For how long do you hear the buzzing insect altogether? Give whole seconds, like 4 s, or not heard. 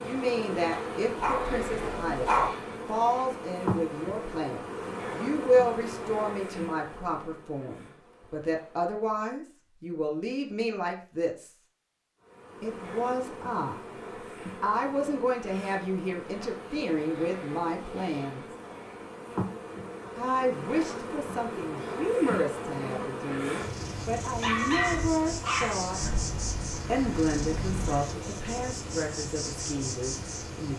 28 s.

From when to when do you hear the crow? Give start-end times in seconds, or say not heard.
25.9-28.1.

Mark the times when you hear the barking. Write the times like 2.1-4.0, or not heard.
1.2-2.5, 24.4-26.0.